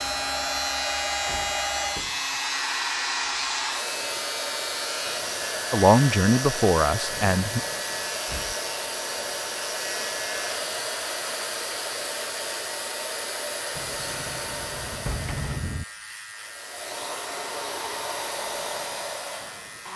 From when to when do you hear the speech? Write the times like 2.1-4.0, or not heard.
5.7-7.6.